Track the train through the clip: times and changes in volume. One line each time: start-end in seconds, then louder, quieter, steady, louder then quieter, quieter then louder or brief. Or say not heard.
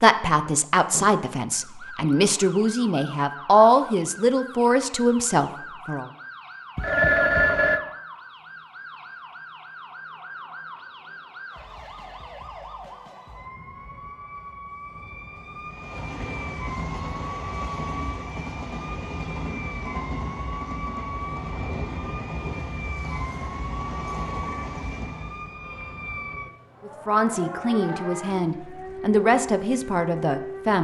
15.7-25.6 steady.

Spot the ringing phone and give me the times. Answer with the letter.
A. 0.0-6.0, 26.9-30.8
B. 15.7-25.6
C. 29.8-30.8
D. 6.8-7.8
D.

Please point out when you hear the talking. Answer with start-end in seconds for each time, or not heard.
0.0-6.0, 26.9-30.8.